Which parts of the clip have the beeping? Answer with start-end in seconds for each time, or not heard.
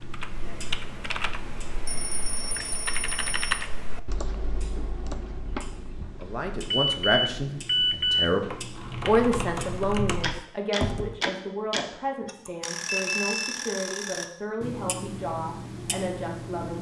1.9-3.6, 6.7-8.3, 12.8-13.6.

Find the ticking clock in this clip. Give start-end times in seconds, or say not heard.
0.0-16.7.